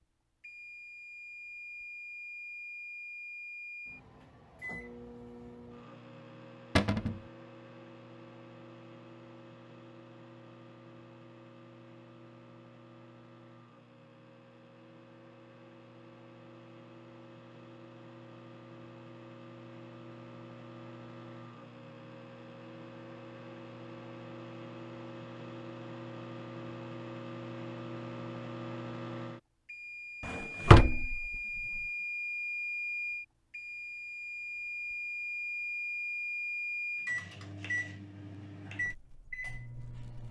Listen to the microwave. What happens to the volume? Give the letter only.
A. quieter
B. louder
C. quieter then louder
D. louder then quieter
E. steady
C.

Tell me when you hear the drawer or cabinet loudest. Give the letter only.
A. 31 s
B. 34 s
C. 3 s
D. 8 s
A.